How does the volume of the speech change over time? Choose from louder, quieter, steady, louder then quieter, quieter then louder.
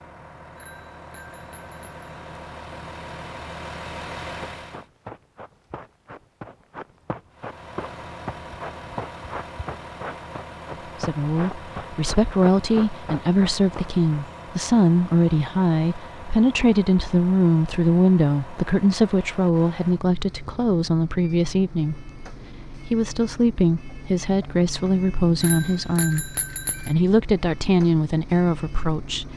steady.